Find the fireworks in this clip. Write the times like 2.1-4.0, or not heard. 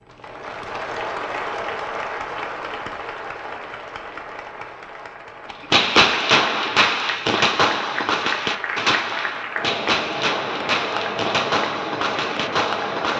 5.5-13.1.